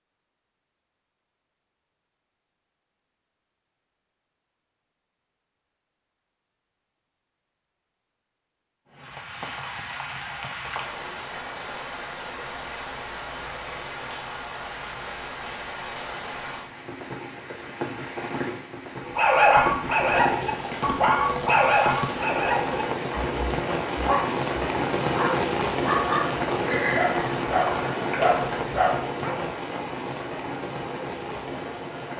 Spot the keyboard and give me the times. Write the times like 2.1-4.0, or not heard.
26.6-28.6.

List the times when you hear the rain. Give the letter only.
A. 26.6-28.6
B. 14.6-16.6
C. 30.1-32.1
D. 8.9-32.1
D.